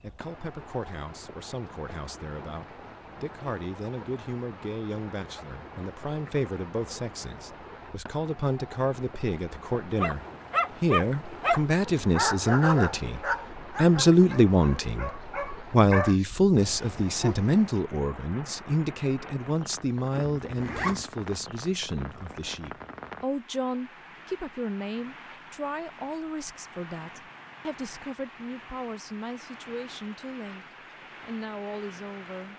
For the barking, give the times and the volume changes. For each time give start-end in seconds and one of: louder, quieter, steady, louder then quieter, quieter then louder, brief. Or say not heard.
10.0-17.4 quieter then louder.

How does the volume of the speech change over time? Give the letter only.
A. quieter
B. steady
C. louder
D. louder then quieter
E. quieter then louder
D.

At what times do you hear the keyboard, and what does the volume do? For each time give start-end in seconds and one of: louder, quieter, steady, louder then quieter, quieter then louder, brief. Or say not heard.
not heard.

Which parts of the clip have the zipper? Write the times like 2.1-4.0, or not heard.
20.2-21.1.